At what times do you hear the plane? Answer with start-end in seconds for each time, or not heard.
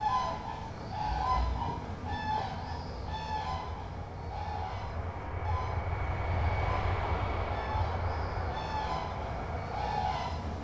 0.0-10.6.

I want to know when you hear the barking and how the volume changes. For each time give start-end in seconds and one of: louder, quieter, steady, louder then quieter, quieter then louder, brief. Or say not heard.
not heard.